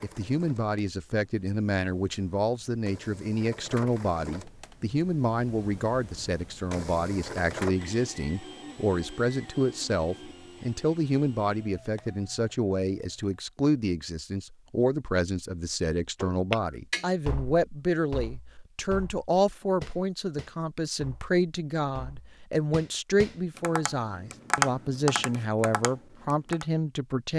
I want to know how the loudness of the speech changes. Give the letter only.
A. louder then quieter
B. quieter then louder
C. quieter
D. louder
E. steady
E.